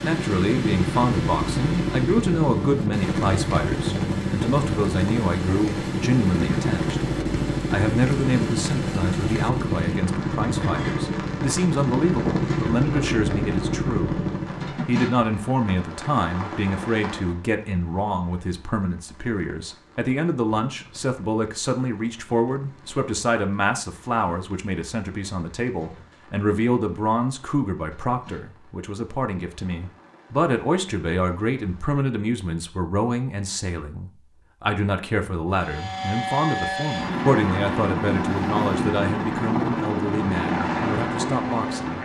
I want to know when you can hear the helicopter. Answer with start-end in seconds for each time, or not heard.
0.0-14.8, 35.5-41.9.